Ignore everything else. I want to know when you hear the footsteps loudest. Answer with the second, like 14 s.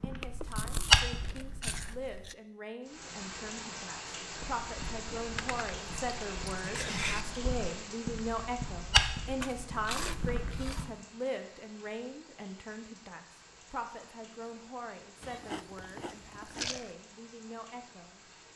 1 s.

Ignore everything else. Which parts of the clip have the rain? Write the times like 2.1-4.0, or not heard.
2.9-18.5.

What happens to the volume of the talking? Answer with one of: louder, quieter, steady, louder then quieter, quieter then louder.
louder then quieter.